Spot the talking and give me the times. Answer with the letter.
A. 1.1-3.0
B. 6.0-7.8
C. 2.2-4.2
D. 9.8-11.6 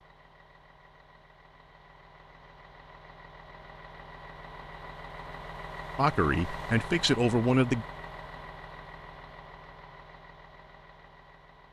B.